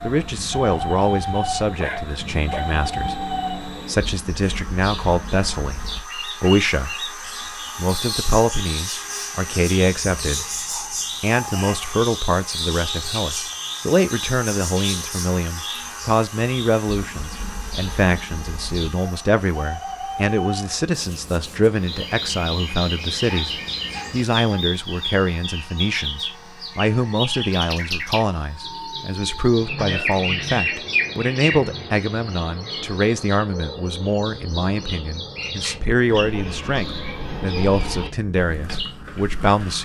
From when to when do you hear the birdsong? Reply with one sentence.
You can hear the birdsong from 0.0 to 39.8 s.